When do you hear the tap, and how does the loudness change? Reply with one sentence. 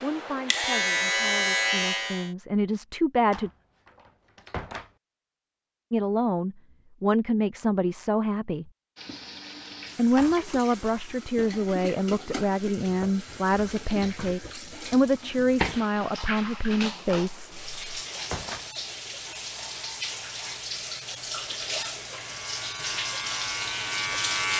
The tap can be heard from 8.9 to 24.5 s, getting louder.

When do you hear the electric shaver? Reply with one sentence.
The electric shaver can be heard from 0.0 to 2.3 s and from 22.1 to 24.5 s.